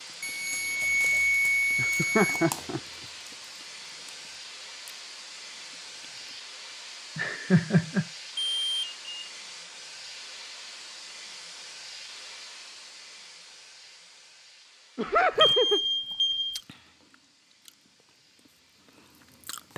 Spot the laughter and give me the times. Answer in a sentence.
The laughter can be heard from 1.8 to 2.8 s, from 7.2 to 8.1 s and from 14.9 to 15.8 s.